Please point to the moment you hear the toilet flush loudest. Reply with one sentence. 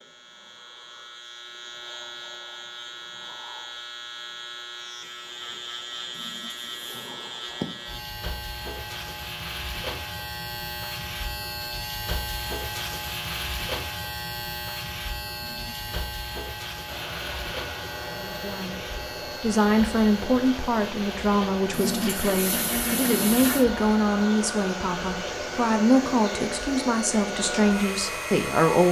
The loudest moment of the toilet flush is at 23 seconds.